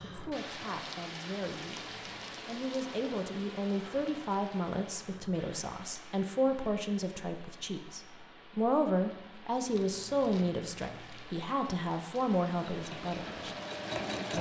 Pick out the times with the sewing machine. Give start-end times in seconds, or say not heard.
12.7-14.3.